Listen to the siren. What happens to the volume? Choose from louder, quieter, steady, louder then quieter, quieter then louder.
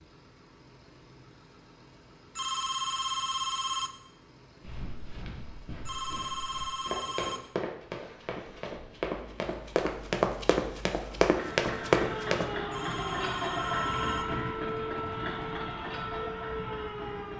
steady.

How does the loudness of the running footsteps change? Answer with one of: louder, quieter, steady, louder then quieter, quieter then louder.
louder.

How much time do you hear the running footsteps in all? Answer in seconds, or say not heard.
8 s.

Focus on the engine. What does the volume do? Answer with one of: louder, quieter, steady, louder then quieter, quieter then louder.
louder.